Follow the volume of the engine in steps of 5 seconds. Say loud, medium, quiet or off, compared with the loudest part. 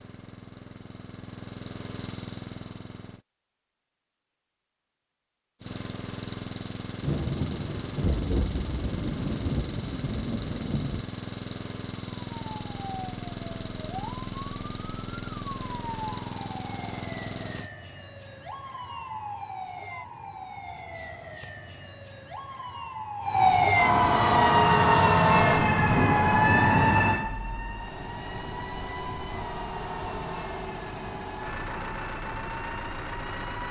medium, loud, loud, loud, off, loud, loud.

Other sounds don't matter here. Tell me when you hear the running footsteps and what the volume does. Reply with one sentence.
The running footsteps can't be heard in this clip.